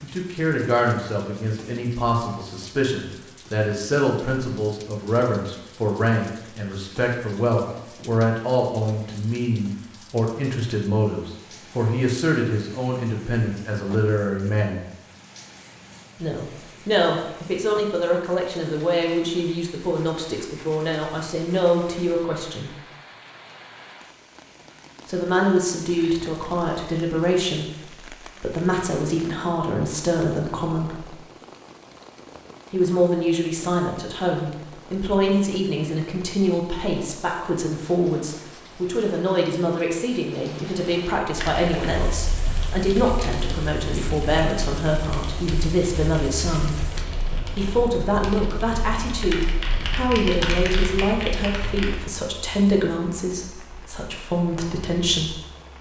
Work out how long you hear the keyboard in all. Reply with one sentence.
You can hear the keyboard for 11 seconds altogether.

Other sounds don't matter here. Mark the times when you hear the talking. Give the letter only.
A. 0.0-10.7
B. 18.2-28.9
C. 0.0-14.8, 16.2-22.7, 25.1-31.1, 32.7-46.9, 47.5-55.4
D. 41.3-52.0
C.